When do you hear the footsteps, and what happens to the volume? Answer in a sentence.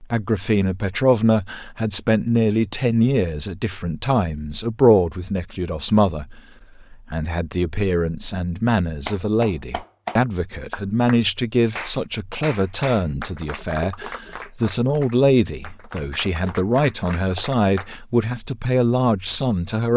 You can't hear the footsteps here.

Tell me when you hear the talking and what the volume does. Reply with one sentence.
You can hear the talking from 0.0 to 19.9 s, at a steady volume.